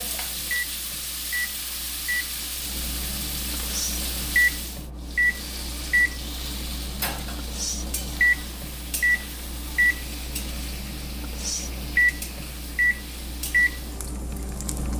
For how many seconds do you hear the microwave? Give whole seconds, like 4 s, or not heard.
15 s.